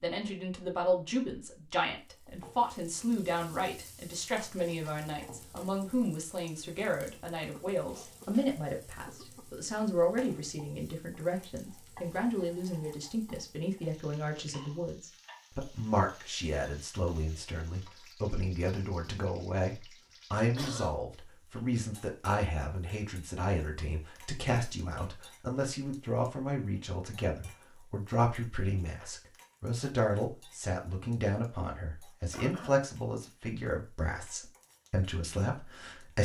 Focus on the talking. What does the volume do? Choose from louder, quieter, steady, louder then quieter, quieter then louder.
steady.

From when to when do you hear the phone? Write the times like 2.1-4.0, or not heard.
not heard.